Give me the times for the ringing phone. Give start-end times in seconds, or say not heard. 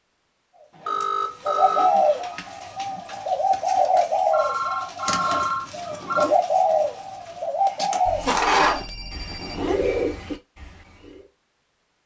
0.8-1.9, 4.3-6.3, 8.1-9.7.